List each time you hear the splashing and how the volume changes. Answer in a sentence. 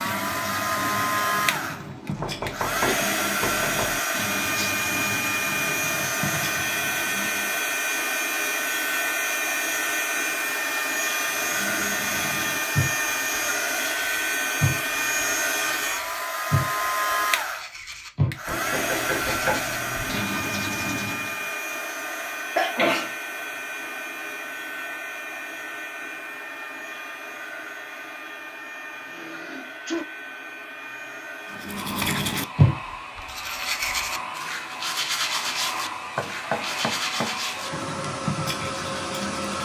You can't hear the splashing here.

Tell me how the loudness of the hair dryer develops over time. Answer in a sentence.
The volume of the hair dryer goes down.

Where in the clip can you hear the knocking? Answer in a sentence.
You can hear the knocking from 2.1 to 4.0 s, from 18.4 to 20.2 s and from 36.1 to 37.4 s.